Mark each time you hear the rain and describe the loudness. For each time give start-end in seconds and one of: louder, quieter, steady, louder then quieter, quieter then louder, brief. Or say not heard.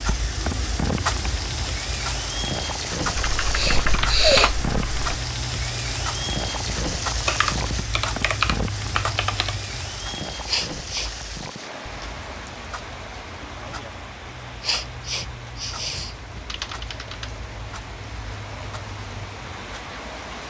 0.0-20.4 quieter.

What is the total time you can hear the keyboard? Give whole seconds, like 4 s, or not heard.
6 s.